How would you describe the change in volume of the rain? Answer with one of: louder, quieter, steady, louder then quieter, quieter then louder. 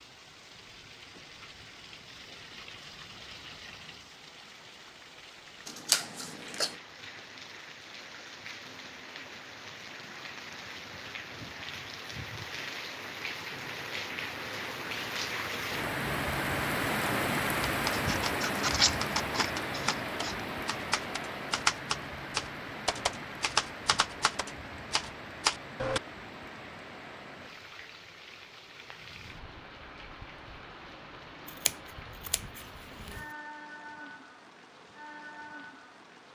louder then quieter.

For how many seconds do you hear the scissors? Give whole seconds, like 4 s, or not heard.
5 s.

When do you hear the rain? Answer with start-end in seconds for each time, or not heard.
0.0-36.2.